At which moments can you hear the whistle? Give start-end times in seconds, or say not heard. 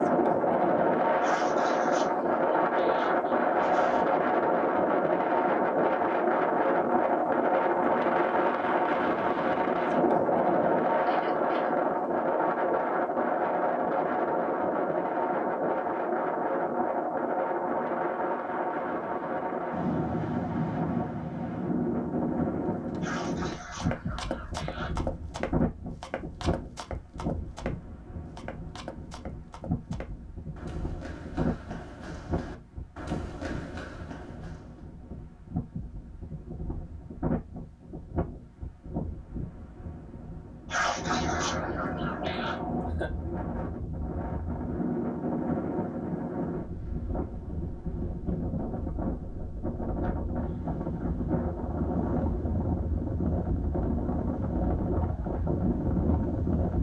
not heard.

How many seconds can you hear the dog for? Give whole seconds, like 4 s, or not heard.
7 s.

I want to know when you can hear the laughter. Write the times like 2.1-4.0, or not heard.
11.1-11.8, 42.3-43.1.